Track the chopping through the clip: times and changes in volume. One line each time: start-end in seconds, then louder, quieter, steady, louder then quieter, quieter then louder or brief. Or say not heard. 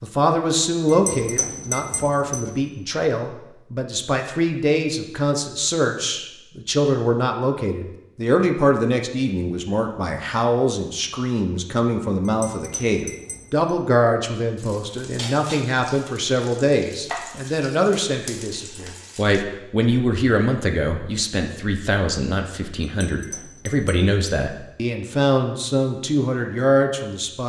not heard.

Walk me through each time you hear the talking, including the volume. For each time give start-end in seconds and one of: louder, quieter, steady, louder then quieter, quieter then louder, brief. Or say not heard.
0.0-27.4 steady.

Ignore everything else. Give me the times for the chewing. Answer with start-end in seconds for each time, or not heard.
not heard.